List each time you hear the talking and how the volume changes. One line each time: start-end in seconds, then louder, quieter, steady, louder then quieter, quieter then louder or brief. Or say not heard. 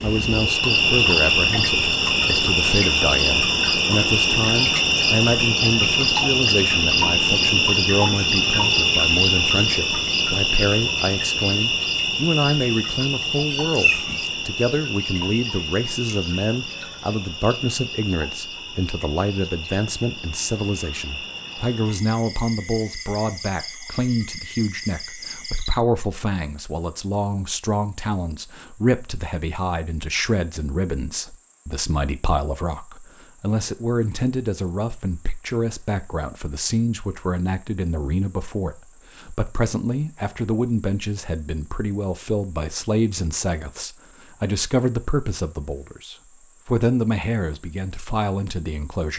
0.0-49.1 steady.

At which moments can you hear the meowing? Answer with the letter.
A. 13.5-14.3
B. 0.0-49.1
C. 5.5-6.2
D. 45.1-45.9
A.